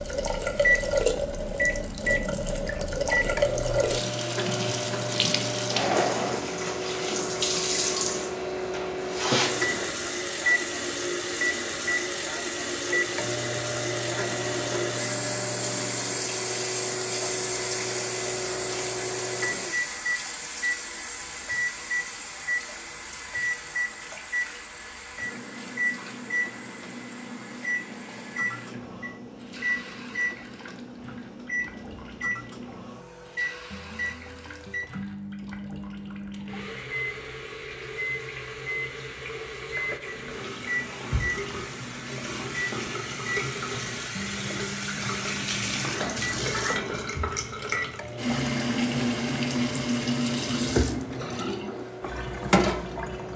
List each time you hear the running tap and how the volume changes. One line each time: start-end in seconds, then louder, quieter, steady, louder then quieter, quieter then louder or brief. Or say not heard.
0.0-53.3 quieter then louder.